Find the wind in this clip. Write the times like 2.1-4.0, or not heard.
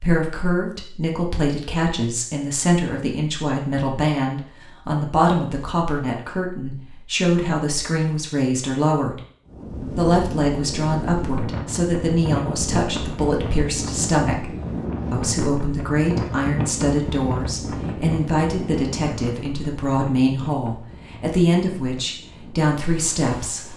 9.4-23.7.